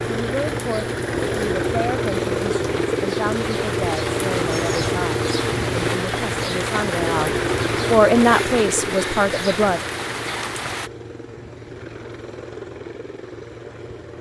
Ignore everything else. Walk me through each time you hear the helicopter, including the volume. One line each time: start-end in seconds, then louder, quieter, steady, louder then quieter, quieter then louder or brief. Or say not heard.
0.0-14.1 quieter.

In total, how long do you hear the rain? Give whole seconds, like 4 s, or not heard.
11 s.